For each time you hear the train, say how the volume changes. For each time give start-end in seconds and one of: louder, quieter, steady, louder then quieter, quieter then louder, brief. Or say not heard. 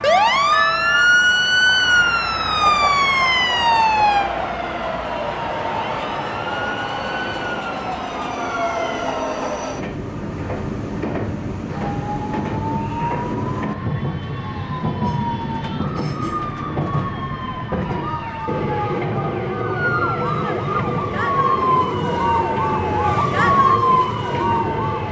0.0-25.0 steady.